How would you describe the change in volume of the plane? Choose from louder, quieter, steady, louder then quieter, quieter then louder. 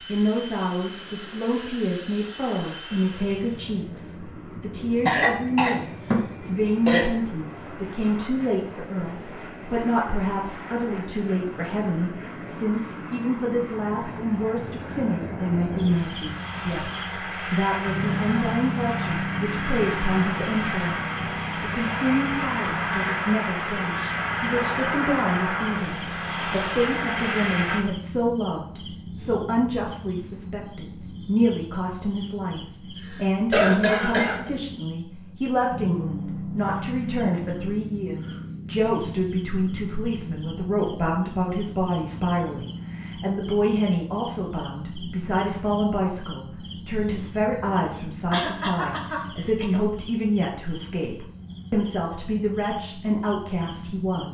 louder.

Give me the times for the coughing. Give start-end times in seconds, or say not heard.
5.0-7.0, 33.0-34.5, 48.3-49.9.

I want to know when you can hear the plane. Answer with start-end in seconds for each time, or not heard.
0.0-27.9.